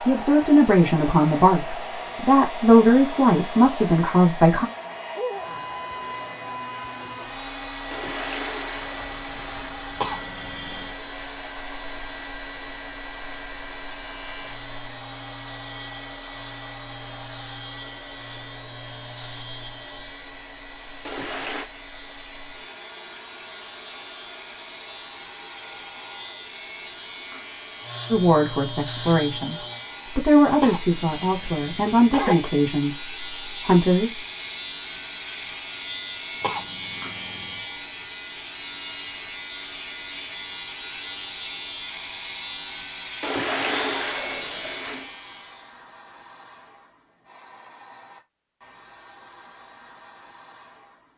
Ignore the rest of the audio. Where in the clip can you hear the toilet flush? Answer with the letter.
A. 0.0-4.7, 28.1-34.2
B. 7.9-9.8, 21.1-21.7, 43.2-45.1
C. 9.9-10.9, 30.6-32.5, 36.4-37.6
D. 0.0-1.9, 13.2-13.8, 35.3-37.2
B.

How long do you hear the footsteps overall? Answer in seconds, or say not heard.
not heard.